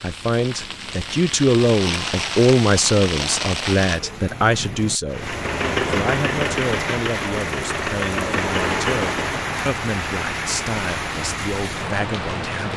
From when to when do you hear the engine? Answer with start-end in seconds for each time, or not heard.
5.2-9.6.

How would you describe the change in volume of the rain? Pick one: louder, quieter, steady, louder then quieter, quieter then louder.
steady.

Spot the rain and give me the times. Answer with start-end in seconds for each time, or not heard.
0.0-12.7.